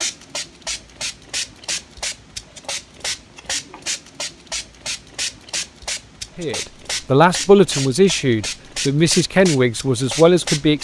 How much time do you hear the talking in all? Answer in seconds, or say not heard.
4 s.